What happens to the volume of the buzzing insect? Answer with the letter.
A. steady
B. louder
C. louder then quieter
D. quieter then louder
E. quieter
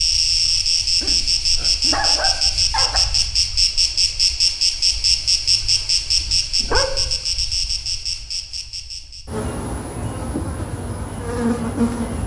E.